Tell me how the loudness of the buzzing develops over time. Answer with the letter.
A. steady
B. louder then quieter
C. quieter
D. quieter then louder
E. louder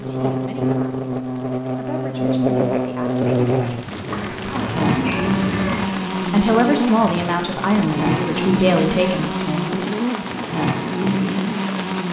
A.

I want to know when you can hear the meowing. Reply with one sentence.
The meowing can be heard from 4.0 to 5.9 s.